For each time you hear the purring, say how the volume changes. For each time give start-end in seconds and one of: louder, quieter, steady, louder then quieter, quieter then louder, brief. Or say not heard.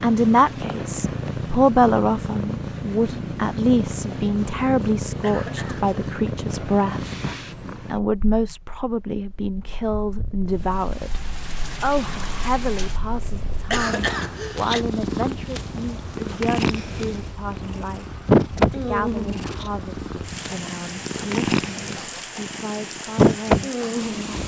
0.0-24.4 quieter then louder.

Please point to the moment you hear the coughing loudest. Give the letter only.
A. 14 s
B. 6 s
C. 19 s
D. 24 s
A.